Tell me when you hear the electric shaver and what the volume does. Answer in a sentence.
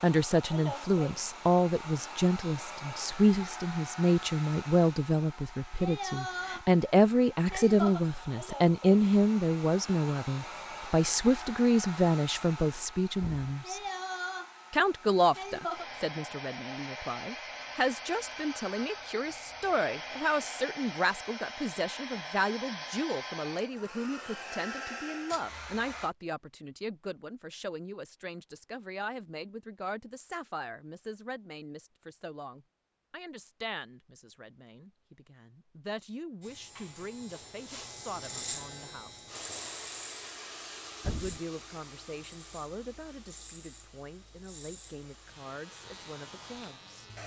You can hear the electric shaver from 36.4 to 47.2 s, getting quieter.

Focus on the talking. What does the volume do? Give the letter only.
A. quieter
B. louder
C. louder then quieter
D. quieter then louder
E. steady
A.